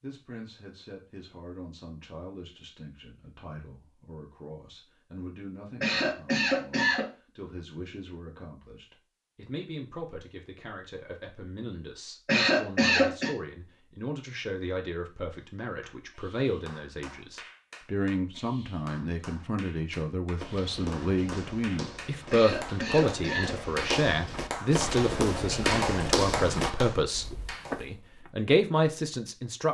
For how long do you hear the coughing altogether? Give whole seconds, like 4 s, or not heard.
4 s.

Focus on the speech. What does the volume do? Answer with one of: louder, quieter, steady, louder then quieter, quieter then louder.
louder.